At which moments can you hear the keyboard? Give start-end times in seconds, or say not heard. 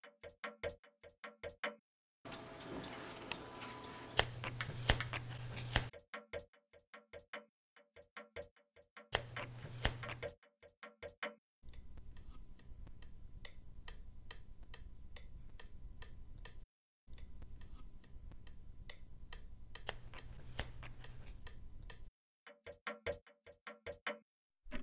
not heard.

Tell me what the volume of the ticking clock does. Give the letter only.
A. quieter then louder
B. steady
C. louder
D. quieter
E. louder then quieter
A.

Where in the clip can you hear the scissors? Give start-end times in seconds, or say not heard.
4.2-5.9, 9.1-10.2, 19.9-21.4.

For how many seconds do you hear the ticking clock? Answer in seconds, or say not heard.
25 s.